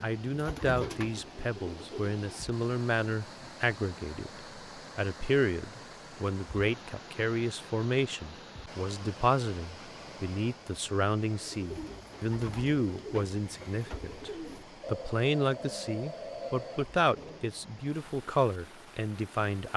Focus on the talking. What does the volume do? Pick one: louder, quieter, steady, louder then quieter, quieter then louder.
steady.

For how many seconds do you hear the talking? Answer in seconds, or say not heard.
19 s.